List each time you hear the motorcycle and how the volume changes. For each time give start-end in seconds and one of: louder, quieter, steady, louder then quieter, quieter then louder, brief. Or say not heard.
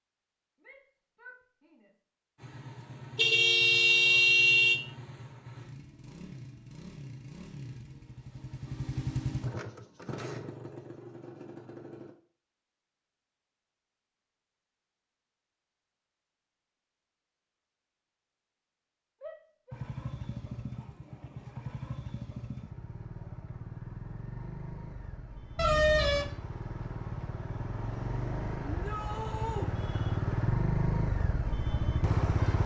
2.4-12.2 louder then quieter
19.7-32.6 louder.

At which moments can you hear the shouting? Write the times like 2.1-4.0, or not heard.
0.6-1.9, 19.2-19.8, 28.6-29.7.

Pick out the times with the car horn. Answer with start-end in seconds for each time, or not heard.
3.1-4.8, 25.6-26.4.